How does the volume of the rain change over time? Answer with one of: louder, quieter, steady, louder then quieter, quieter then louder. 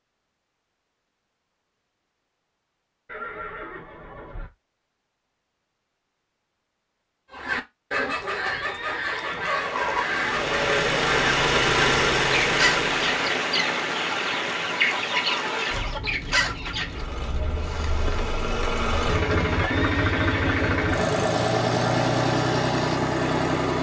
quieter.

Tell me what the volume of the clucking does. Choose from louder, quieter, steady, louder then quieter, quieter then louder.
steady.